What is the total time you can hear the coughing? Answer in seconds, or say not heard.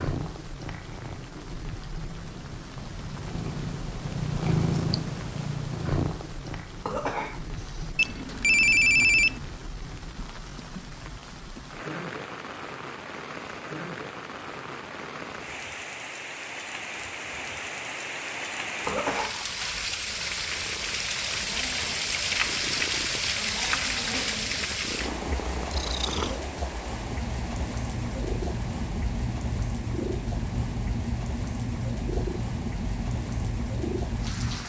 2 s.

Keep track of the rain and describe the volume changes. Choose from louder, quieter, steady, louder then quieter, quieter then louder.
louder then quieter.